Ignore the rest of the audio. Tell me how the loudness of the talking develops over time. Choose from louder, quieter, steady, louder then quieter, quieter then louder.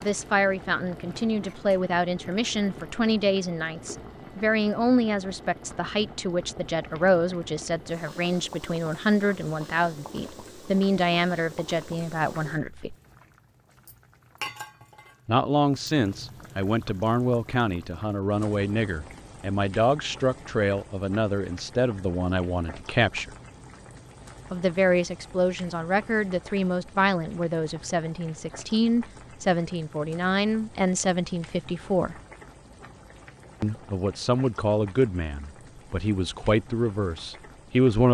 steady.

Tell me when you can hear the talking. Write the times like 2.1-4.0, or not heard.
0.0-12.9, 15.2-23.3, 24.5-32.2, 33.6-38.0.